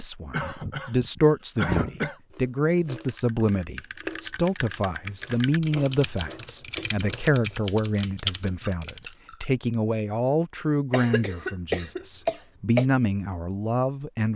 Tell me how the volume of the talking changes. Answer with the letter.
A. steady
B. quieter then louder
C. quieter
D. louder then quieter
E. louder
A.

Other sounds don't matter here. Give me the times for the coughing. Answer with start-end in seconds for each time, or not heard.
0.3-2.1, 10.9-12.8.